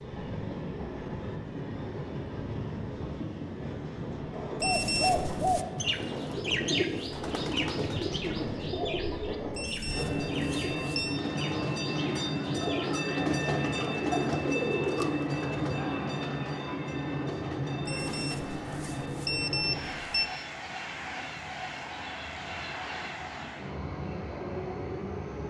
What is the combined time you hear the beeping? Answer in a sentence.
You can hear the beeping for 5 seconds altogether.